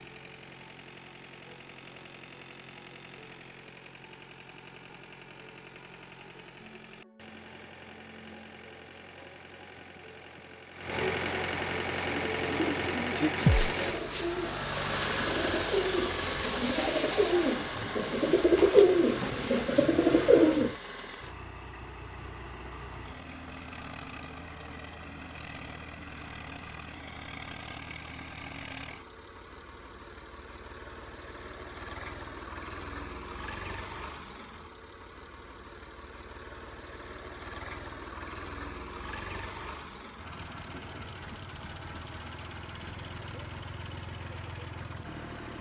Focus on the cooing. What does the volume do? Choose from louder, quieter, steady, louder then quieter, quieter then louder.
louder.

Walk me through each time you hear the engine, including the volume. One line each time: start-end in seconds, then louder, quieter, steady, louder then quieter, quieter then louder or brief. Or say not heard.
0.0-45.5 louder then quieter.